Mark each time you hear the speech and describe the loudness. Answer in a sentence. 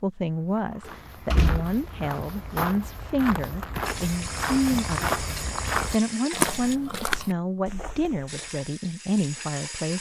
You can hear the speech from 0.0 to 9.9 s, at a steady volume.